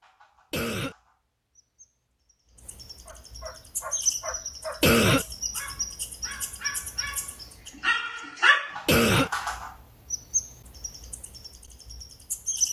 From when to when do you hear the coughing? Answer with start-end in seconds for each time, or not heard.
0.5-0.9, 4.8-5.2, 8.8-9.3.